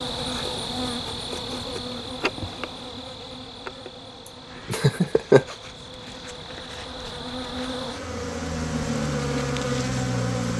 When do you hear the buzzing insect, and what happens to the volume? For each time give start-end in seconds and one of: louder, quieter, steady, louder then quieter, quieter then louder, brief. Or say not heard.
0.0-10.5 quieter then louder.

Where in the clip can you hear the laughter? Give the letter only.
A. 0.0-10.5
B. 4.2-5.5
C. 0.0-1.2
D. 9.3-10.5
B.